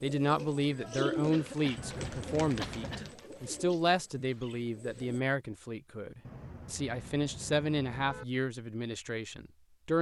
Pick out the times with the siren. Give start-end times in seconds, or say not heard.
not heard.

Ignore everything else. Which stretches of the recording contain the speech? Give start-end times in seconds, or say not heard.
0.0-9.9.